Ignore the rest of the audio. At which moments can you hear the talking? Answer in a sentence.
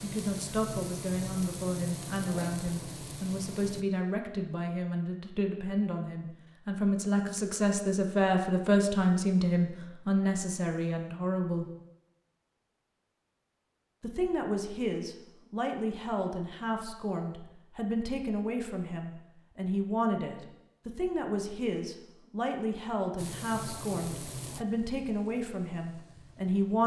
You can hear the talking from 0.0 to 11.7 s and from 14.0 to 26.8 s.